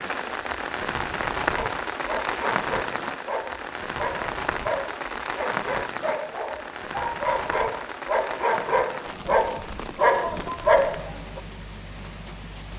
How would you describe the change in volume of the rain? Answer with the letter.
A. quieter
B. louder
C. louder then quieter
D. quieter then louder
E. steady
A.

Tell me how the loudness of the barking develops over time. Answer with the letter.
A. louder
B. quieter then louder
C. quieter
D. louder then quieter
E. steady
A.